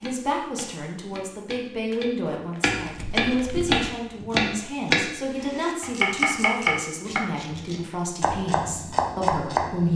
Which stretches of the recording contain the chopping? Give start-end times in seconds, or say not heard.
0.0-9.9.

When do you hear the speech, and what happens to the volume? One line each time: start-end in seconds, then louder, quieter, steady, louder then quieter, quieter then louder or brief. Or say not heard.
0.0-9.9 steady.